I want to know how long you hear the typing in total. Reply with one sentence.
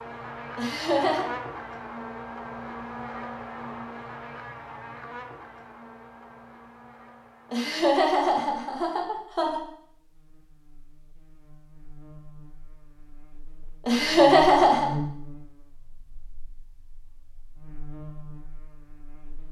The typing can't be heard in this clip.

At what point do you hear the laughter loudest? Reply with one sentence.
The volume of the laughter peaks at 14 seconds.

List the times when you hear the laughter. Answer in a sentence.
The laughter can be heard from 0.6 to 1.2 s, from 7.5 to 9.6 s and from 13.8 to 14.9 s.